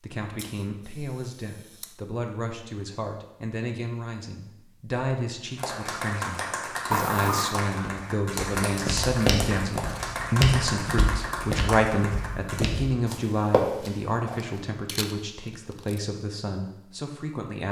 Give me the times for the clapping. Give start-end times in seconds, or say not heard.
5.5-12.7.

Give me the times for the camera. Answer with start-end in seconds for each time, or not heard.
0.3-1.9, 6.9-7.6, 14.8-16.0.